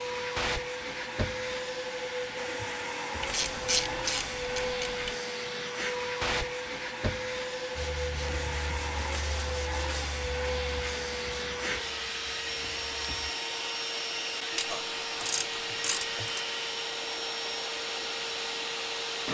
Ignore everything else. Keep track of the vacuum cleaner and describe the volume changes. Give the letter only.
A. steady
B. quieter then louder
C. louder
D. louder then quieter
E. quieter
A.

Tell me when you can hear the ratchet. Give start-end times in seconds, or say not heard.
3.2-5.2, 14.5-16.4.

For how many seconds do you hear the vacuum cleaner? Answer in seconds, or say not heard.
19 s.